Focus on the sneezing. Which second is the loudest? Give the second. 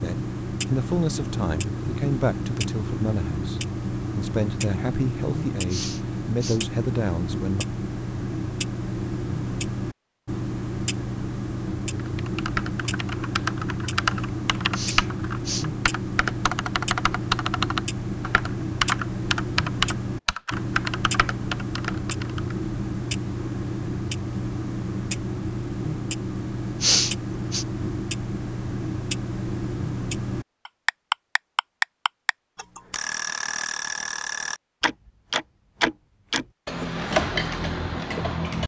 27 s.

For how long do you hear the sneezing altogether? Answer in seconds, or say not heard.
3 s.